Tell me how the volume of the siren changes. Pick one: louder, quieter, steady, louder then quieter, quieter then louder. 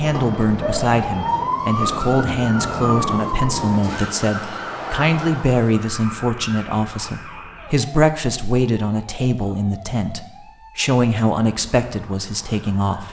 quieter.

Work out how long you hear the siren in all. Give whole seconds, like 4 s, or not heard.
13 s.